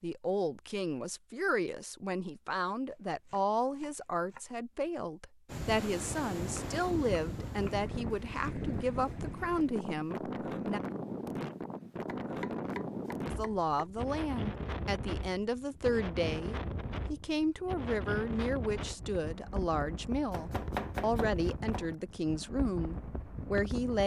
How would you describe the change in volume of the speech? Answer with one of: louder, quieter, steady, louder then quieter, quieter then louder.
steady.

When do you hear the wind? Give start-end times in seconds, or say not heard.
5.5-24.0.